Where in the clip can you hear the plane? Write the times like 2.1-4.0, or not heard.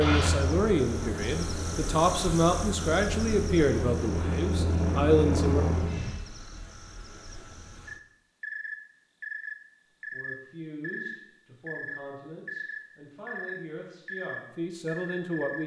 0.0-6.2.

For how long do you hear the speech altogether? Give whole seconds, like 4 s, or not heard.
11 s.